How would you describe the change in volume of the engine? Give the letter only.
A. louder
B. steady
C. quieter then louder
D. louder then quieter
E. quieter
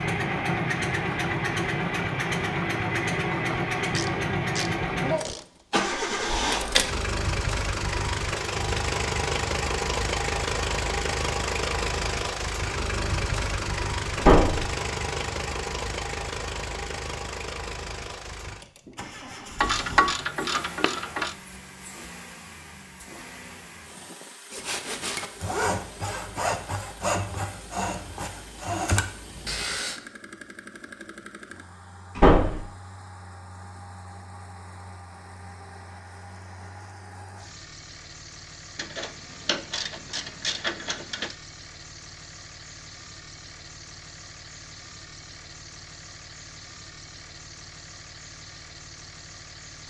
E.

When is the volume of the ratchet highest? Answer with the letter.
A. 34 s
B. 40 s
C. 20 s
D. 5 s
C.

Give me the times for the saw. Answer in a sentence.
You can hear the saw from 24.5 to 30.0 s.